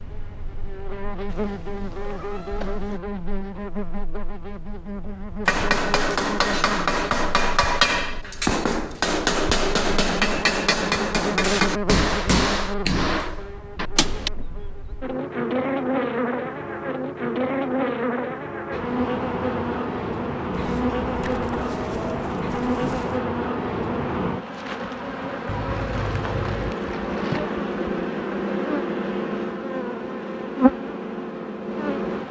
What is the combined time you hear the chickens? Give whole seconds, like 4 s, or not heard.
3 s.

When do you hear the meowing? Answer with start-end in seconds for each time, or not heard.
1.2-3.0, 25.4-26.8.